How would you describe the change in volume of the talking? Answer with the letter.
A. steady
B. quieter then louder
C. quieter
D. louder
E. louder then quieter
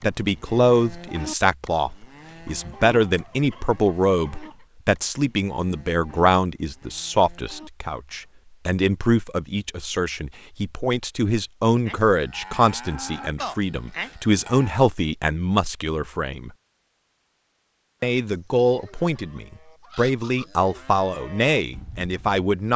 A.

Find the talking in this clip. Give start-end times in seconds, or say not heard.
0.0-16.5, 18.0-22.7.